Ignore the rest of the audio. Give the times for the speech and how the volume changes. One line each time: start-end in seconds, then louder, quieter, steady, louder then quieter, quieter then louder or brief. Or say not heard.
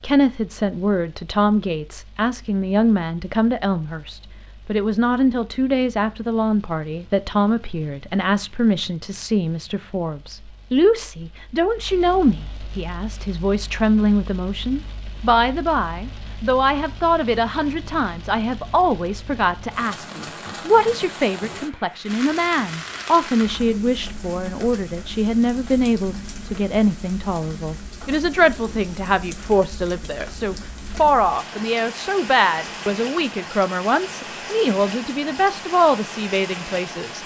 0.0-37.2 steady.